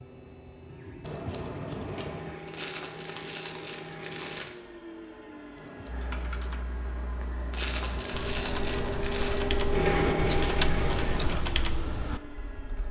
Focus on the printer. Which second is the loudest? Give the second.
10 s.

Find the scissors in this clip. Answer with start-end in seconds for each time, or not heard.
1.0-2.4, 5.5-6.2, 10.0-11.4.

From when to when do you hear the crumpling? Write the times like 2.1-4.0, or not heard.
2.5-4.5, 7.5-9.4.